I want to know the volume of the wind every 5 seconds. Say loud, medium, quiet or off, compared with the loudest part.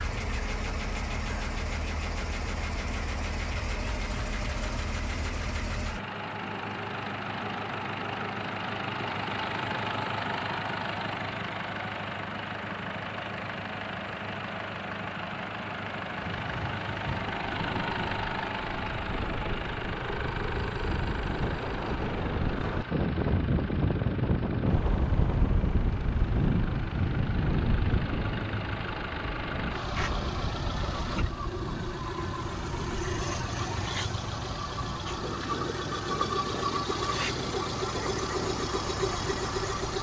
off, off, off, medium, loud, loud, medium, medium.